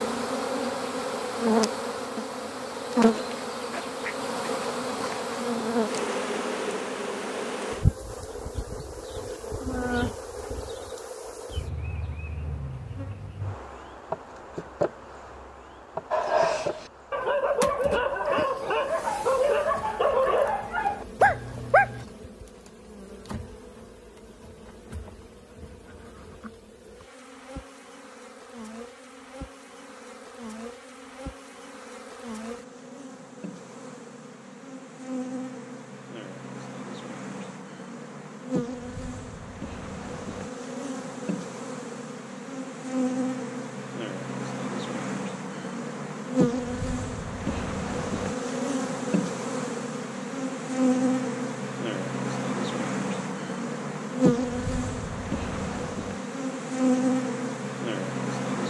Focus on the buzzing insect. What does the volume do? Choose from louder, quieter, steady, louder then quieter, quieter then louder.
quieter then louder.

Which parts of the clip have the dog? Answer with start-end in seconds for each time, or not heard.
16.1-22.1.